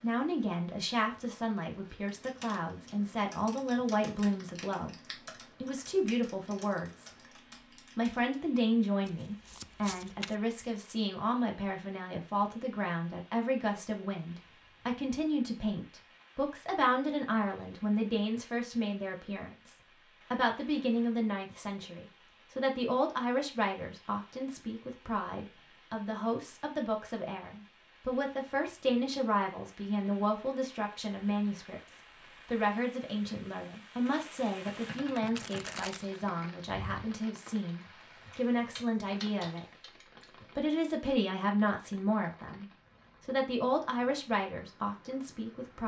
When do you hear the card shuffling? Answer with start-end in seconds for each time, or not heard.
9.1-10.3, 35.1-36.0.